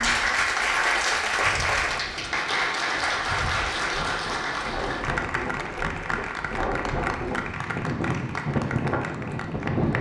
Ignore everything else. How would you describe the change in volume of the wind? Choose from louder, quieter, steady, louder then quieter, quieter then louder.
louder.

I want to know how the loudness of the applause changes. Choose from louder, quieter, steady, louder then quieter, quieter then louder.
quieter.